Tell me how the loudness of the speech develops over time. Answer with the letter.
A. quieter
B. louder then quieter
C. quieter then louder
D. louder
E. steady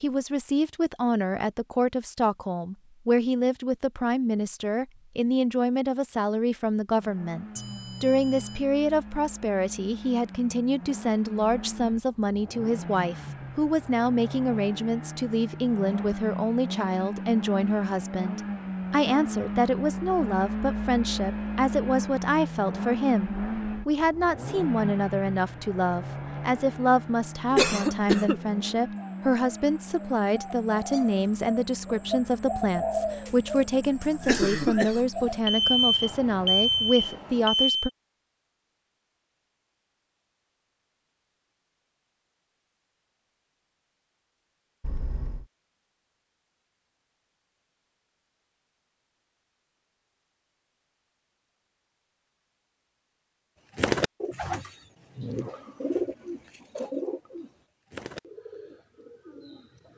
E.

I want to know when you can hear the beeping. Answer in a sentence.
You can hear the beeping from 7.5 to 8.7 s, from 35.5 to 37.9 s and from 44.8 to 45.5 s.